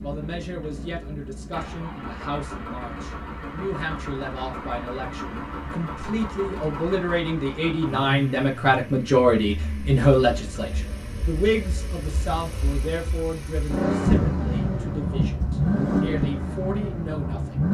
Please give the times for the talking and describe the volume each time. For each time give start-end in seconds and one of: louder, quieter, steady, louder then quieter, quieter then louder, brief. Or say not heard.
0.0-17.7 louder then quieter.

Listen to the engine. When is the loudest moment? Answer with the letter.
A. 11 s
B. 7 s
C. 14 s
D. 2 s
C.